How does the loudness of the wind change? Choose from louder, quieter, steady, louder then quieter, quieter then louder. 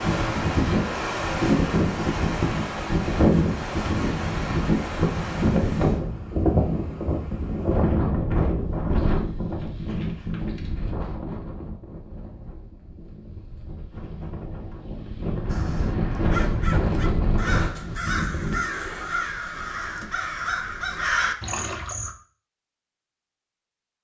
quieter then louder.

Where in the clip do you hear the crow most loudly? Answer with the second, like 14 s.
21 s.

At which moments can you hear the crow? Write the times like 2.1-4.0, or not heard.
15.4-22.1.